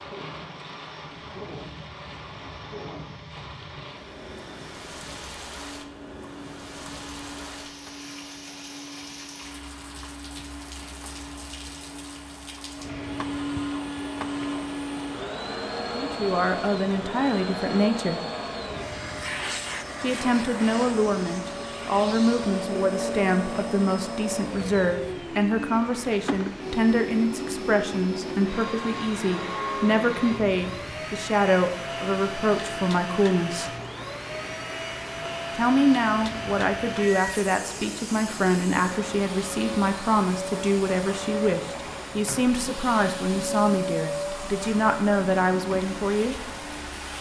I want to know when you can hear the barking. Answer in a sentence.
You can't hear the barking here.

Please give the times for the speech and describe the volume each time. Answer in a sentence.
You can hear the speech briefly from 15.9 to 18.2 s; from 20.0 to 33.7 s, at a steady volume; and from 35.5 to 46.4 s, at a steady volume.